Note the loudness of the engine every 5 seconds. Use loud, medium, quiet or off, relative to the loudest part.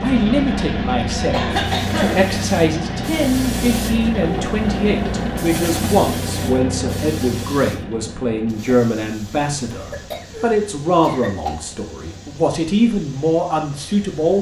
loud, loud, quiet.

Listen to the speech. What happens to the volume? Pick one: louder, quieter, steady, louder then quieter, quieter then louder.
steady.